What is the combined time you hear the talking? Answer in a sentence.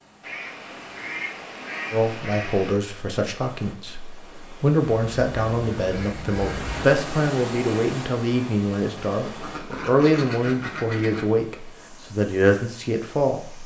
You can hear the talking for 12 seconds altogether.